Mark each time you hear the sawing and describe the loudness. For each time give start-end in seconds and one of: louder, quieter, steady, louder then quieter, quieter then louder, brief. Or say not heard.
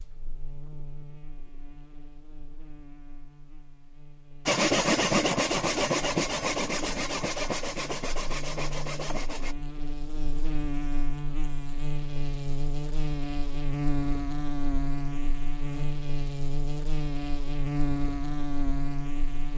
4.5-9.6 quieter.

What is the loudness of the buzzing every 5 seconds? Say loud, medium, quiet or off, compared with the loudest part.
quiet, medium, loud, loud.